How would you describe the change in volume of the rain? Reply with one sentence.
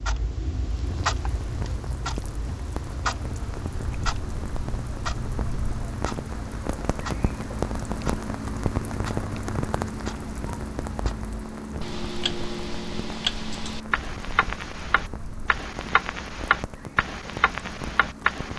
The loudness of the rain goes up, then down.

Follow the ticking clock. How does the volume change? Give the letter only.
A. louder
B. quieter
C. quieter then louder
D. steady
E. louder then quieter
C.